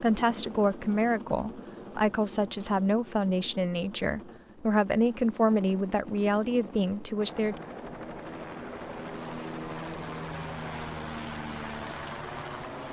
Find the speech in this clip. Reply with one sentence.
You can hear the speech from 0.0 to 7.6 s.